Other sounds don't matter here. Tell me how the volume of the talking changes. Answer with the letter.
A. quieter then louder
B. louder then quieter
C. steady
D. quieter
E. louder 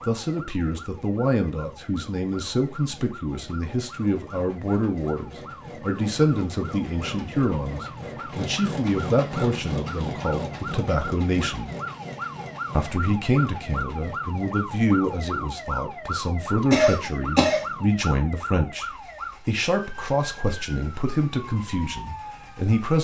C.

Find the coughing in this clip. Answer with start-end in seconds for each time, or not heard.
16.7-17.6.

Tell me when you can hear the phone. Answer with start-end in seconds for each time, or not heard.
not heard.